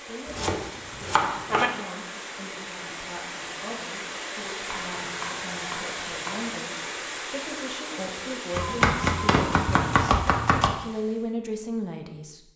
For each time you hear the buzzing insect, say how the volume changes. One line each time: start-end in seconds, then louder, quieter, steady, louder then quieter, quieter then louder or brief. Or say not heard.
not heard.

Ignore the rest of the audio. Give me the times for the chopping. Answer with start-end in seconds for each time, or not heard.
0.2-1.7, 4.7-6.5, 8.5-10.8.